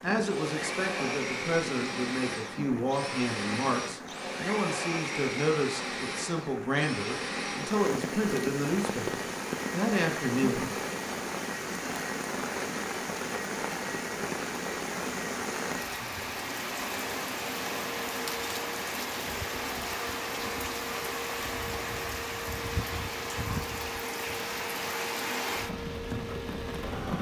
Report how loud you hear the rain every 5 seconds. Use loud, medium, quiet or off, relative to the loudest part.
medium, loud, loud, loud, loud, loud.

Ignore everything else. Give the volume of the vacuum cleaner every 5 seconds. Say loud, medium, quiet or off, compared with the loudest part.
loud, loud, medium, medium, medium, medium.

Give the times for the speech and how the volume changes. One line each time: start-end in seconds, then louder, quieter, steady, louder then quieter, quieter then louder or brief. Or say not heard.
0.0-10.7 steady.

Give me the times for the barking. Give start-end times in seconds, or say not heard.
not heard.